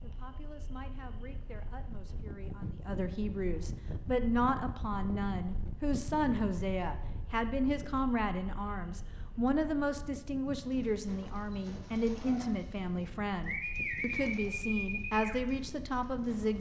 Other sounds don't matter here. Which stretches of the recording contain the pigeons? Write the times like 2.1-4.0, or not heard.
10.6-16.5.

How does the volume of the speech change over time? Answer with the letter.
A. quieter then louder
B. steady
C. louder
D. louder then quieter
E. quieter
C.